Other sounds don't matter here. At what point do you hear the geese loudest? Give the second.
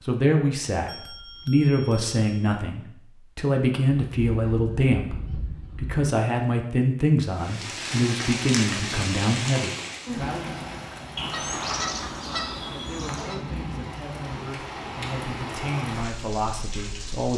12 s.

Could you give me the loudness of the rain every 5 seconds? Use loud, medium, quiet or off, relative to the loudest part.
off, loud, medium, medium.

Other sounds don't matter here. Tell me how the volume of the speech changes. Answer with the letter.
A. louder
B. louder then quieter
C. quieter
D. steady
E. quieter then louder
C.